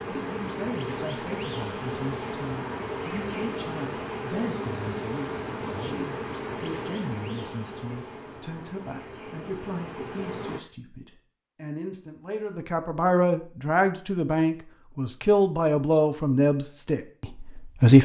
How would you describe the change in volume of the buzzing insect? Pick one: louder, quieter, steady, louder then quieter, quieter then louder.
quieter.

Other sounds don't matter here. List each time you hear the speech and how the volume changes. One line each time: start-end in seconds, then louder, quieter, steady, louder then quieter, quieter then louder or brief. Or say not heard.
0.1-17.9 louder.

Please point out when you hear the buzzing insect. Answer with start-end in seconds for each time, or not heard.
0.0-10.6.